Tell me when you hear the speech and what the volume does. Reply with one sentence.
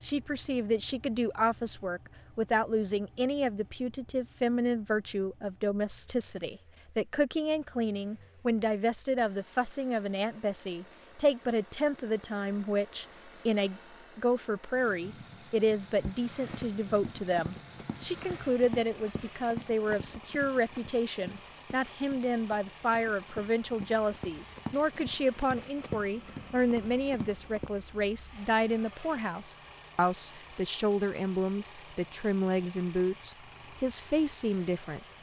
The speech can be heard from 0.0 to 35.1 s, at a steady volume.